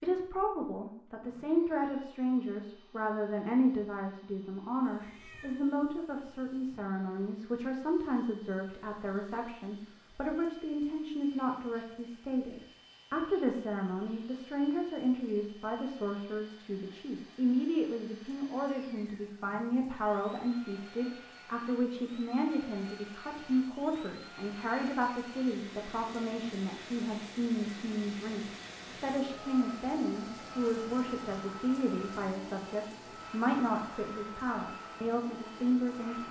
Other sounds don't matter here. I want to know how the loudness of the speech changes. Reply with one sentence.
The loudness of the speech stays about the same.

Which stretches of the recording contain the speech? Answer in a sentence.
You can hear the speech from 0.0 to 36.2 s.